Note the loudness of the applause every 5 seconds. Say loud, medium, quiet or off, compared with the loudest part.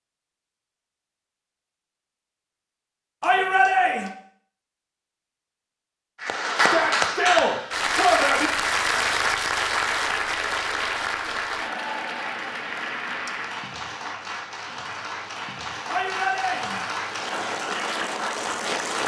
off, loud, medium, medium.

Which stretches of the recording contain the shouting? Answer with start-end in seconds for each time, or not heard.
3.2-4.1, 6.5-8.5, 15.8-16.9.